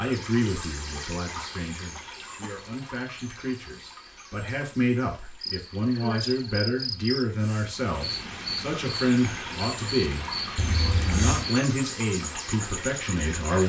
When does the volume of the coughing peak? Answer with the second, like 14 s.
11 s.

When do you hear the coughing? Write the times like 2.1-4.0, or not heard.
1.3-2.5, 5.5-6.2, 10.6-11.4.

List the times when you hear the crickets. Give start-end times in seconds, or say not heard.
5.4-13.6.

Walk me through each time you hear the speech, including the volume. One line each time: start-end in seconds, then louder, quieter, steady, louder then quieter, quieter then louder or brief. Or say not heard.
0.0-10.2 louder
11.0-13.6 brief.